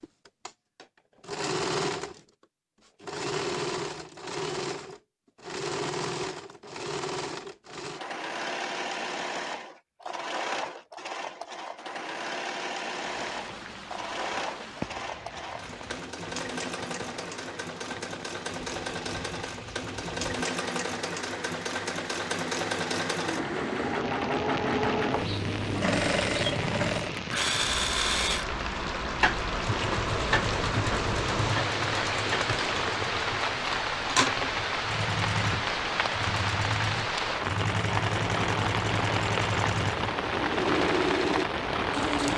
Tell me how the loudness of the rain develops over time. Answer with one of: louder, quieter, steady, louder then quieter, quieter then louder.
louder.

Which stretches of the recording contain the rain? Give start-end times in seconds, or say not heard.
13.1-42.3.